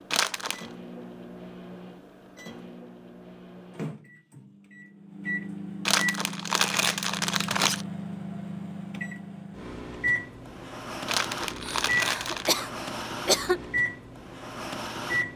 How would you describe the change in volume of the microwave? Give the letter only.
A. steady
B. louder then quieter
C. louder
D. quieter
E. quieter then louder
C.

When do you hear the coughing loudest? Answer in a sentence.
The volume of the coughing peaks at 13 seconds.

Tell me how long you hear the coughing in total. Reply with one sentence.
The coughing can be heard for 2 seconds in total.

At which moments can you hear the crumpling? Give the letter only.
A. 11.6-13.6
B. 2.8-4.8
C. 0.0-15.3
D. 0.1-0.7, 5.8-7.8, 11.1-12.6
D.